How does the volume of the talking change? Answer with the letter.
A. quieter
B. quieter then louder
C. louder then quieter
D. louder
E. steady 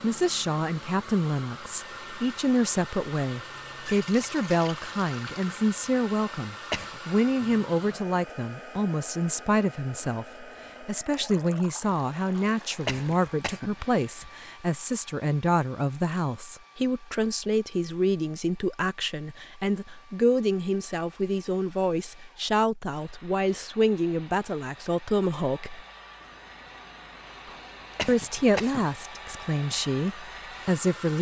E.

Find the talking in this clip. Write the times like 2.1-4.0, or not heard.
0.0-25.8, 28.1-31.1.